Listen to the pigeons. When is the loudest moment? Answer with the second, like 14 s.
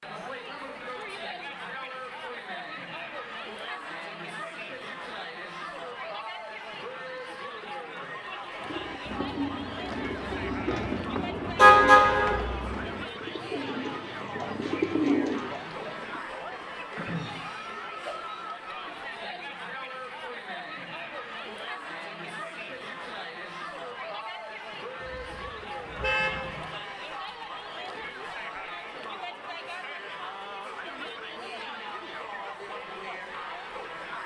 15 s.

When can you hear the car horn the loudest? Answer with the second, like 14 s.
12 s.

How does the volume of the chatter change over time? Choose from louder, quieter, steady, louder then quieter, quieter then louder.
steady.